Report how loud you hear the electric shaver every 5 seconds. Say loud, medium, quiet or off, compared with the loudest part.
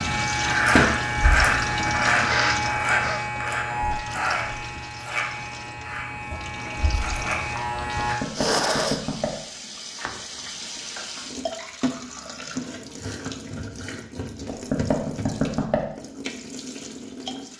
loud, medium, off, off.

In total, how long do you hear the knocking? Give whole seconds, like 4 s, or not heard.
3 s.